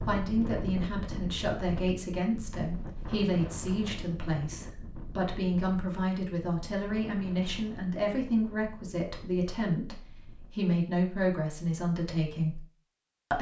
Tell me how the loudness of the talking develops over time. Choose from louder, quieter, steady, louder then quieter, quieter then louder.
steady.